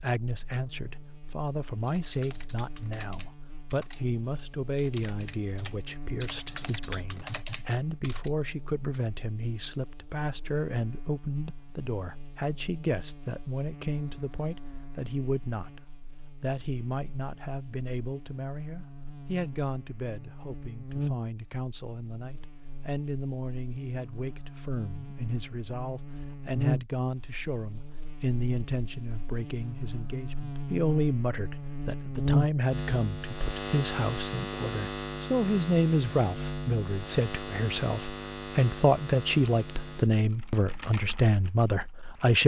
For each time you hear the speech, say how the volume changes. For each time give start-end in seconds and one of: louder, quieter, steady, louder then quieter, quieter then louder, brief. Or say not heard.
0.0-15.8 steady
16.4-42.4 louder.